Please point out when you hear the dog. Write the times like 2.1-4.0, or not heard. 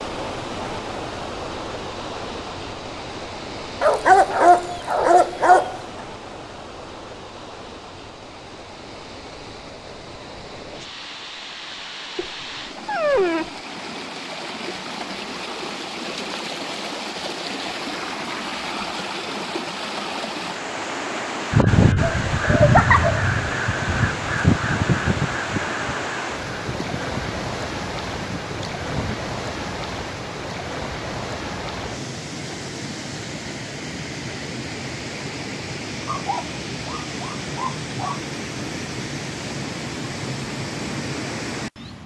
3.8-5.8, 12.2-13.6, 21.9-23.2, 36.0-38.2.